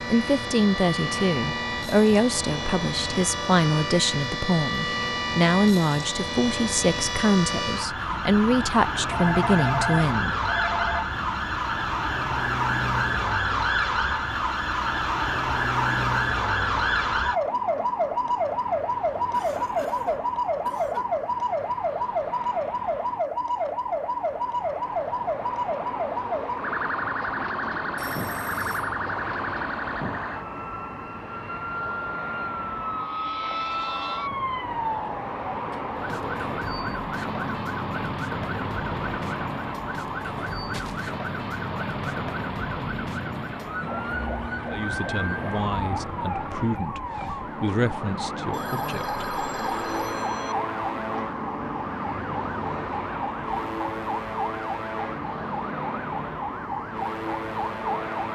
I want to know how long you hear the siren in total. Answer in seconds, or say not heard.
58 s.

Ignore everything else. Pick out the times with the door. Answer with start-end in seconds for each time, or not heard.
not heard.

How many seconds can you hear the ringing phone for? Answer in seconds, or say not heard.
5 s.